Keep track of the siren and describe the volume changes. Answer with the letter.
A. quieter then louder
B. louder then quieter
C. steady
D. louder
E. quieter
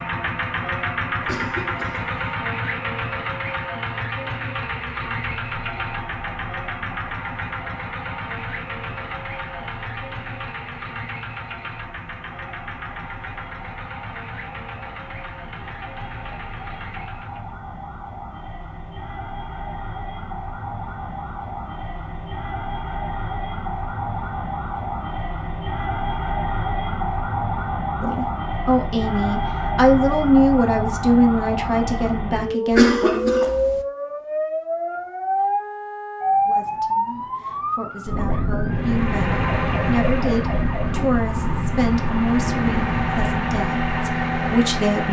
D.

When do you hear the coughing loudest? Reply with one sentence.
The volume of the coughing peaks at 33 seconds.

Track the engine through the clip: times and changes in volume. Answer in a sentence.
The engine can be heard from 0.0 to 17.6 s, getting quieter; and from 38.6 to 45.0 s, getting quieter then louder.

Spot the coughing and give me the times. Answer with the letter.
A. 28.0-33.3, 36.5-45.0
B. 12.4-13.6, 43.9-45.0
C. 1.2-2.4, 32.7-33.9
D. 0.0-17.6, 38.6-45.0
C.